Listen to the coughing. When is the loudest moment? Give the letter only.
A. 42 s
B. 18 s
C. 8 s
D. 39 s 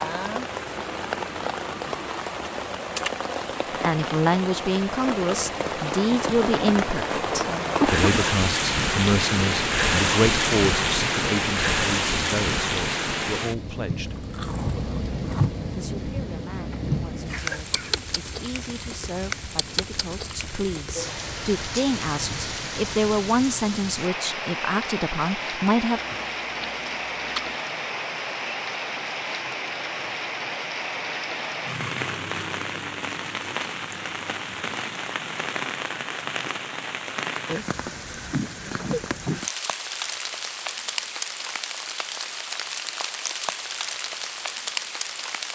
C.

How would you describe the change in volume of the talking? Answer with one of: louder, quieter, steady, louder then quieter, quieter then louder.
quieter then louder.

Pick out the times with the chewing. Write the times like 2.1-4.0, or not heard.
13.9-15.7, 25.9-27.6.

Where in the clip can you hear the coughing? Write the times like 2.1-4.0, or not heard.
7.8-8.3, 16.6-18.1, 38.2-39.4.